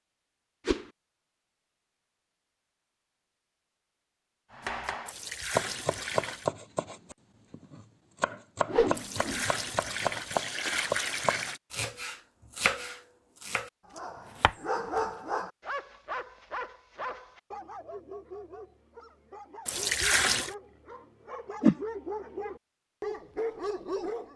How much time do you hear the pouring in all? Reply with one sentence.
You can hear the pouring for 5 seconds altogether.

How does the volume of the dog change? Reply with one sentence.
The volume of the dog goes down, then up.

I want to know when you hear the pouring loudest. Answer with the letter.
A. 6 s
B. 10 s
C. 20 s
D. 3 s
C.